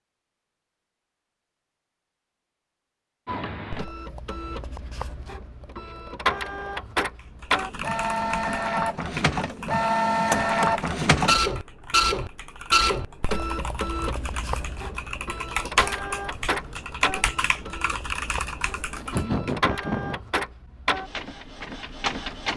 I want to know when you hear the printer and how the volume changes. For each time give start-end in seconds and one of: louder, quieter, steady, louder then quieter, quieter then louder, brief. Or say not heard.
3.2-22.5 louder then quieter.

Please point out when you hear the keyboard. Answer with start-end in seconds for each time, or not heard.
7.4-19.6.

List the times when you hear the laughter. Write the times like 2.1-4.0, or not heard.
18.9-20.2.